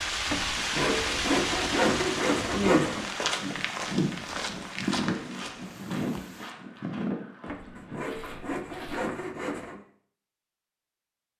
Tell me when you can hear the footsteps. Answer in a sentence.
You can hear the footsteps from 2.9 to 9.0 s.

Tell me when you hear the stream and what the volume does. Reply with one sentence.
You can hear the stream from 0.0 to 6.5 s, getting quieter.